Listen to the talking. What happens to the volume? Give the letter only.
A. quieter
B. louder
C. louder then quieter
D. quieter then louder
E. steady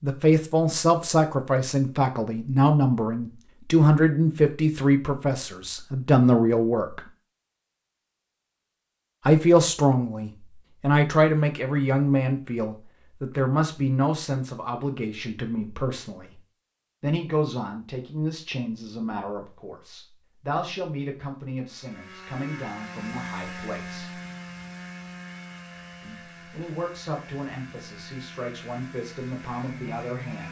A.